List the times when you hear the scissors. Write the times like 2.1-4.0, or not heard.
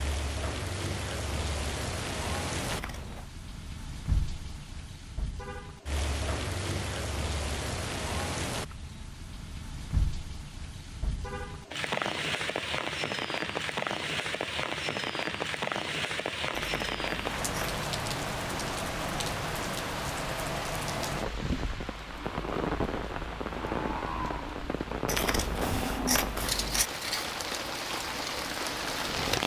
2.6-3.3, 16.5-17.8, 25.1-26.9.